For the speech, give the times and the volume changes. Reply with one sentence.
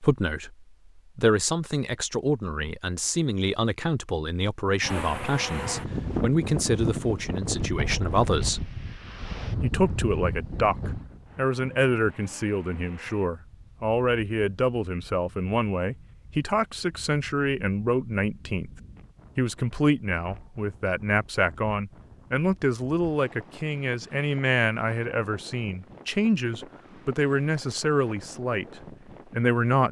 You can hear the speech from 0.0 to 8.7 s, at a steady volume; from 9.6 to 18.7 s, at a steady volume; and from 19.4 to 29.8 s, at a steady volume.